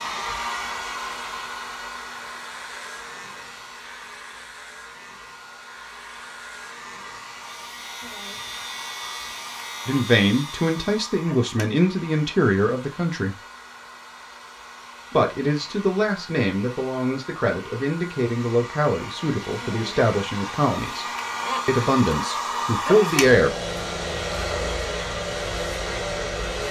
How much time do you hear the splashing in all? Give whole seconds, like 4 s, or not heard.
not heard.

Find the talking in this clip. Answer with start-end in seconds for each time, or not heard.
9.8-13.3, 15.1-21.1, 21.6-23.5.